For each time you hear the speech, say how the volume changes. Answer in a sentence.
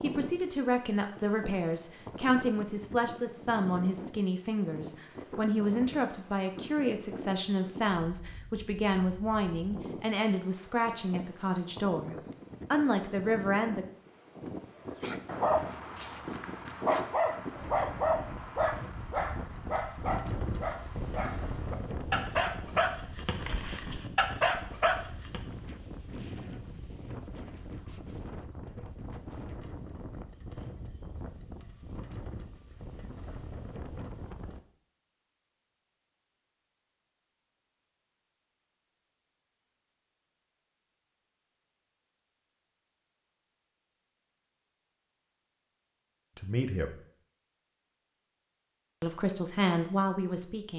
You can hear the speech from 0.0 to 13.8 s, at a steady volume; briefly from 46.4 to 47.0 s; and briefly from 49.0 to 50.7 s.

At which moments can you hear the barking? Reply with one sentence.
The barking can be heard from 15.0 to 25.4 s.